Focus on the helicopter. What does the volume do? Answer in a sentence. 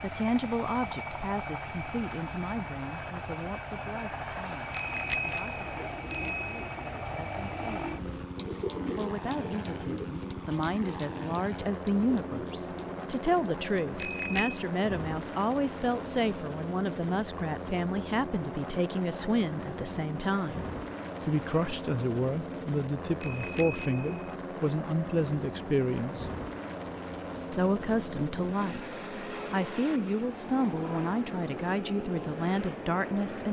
The volume of the helicopter stays about the same.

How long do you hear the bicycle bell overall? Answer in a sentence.
The bicycle bell can be heard for 4 seconds in total.